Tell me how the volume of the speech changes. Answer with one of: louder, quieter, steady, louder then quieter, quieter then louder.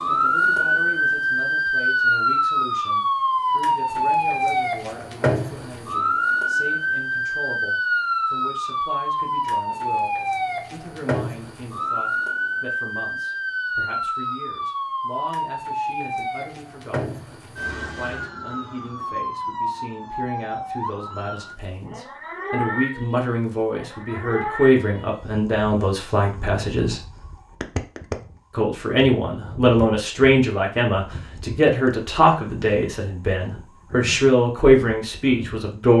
louder.